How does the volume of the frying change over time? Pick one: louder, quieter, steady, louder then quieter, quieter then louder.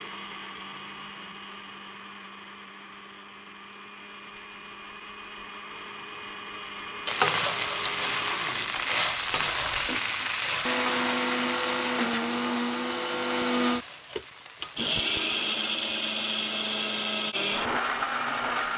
quieter.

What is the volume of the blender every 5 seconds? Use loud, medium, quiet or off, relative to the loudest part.
quiet, medium, loud, loud.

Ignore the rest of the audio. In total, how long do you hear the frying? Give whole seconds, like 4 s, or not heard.
8 s.